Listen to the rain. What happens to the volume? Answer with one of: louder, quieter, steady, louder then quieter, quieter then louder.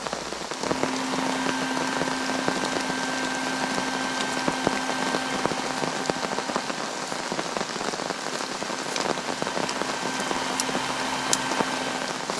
steady.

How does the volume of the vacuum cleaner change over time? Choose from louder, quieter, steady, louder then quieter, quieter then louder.
quieter then louder.